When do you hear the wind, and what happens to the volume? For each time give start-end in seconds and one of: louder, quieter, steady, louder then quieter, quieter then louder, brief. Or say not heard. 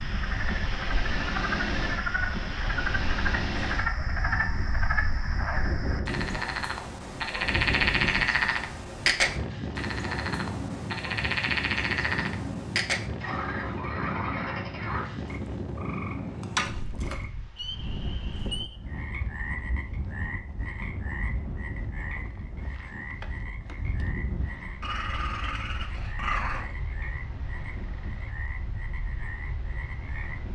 0.0-30.5 quieter.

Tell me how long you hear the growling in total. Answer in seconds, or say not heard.
2 s.